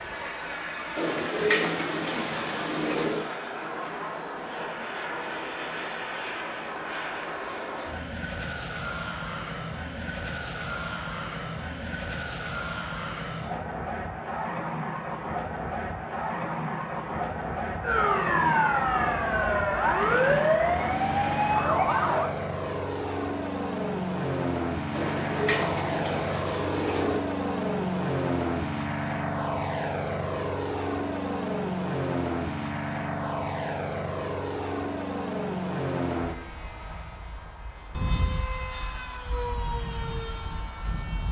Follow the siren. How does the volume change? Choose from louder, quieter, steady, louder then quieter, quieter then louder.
steady.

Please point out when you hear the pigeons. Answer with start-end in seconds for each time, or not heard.
0.9-3.3, 24.9-27.2.